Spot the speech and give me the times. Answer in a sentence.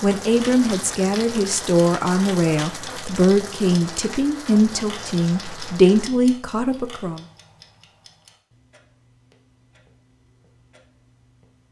You can hear the speech from 0.0 to 7.2 s.